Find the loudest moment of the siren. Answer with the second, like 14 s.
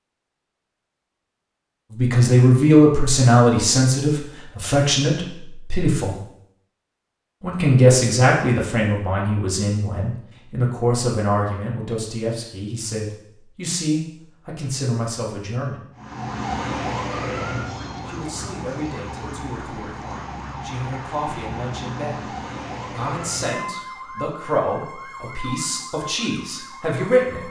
17 s.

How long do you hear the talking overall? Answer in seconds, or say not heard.
22 s.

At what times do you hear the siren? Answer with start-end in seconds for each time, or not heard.
15.9-27.4.